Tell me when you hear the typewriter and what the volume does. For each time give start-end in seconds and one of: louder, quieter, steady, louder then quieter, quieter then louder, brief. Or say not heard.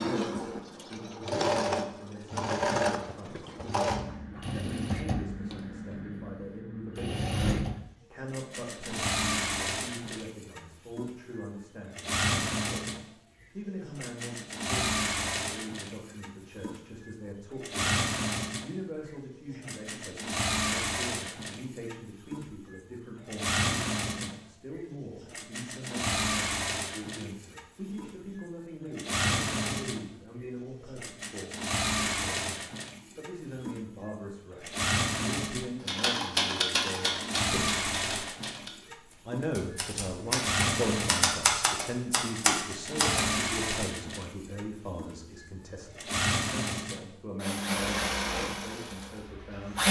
35.9-43.3 quieter then louder.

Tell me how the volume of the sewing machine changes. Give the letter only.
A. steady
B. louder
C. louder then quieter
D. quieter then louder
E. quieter
A.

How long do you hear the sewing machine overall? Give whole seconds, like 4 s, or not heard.
50 s.